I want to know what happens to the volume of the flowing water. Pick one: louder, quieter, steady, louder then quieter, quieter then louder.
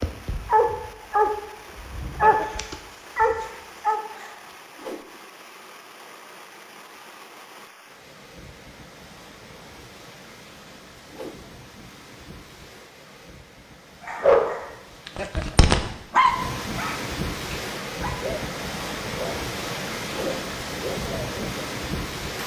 louder.